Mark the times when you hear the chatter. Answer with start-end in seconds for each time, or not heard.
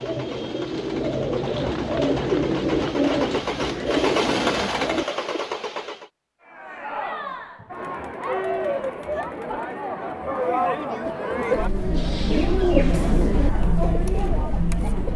6.5-15.1.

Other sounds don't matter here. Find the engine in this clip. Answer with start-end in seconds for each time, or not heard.
0.0-6.1.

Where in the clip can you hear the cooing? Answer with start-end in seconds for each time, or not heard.
0.0-5.5, 11.1-15.1.